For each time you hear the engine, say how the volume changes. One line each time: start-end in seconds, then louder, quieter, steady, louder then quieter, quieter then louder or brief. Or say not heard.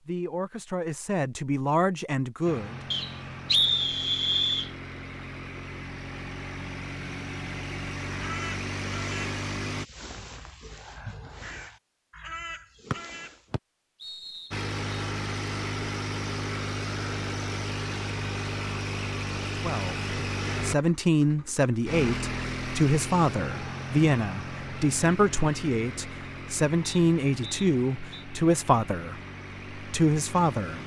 2.5-9.8 louder
14.5-30.8 quieter.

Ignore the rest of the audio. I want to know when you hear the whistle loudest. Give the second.
4 s.